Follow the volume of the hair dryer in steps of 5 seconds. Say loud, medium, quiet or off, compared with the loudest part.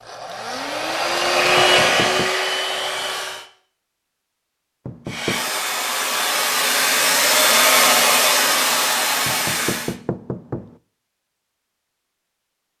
loud, loud, off.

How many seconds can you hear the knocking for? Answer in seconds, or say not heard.
3 s.